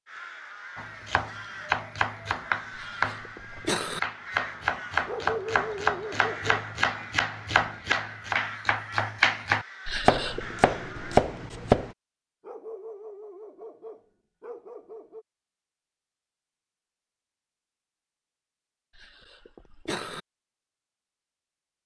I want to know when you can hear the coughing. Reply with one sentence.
You can hear the coughing from 2.8 to 4.0 s, from 9.8 to 10.6 s and from 18.9 to 20.2 s.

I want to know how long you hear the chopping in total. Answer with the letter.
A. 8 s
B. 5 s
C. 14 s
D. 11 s
D.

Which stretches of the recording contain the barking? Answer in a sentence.
You can hear the barking from 5.0 to 6.7 s and from 12.4 to 15.2 s.